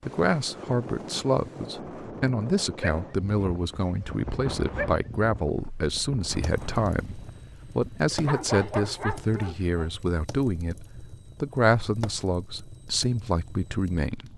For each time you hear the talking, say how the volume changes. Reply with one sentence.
You can hear the talking from 0.0 to 14.3 s, at a steady volume.